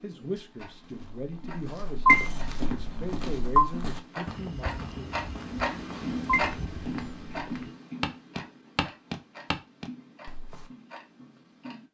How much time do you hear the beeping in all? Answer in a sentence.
You can hear the beeping for 3 seconds altogether.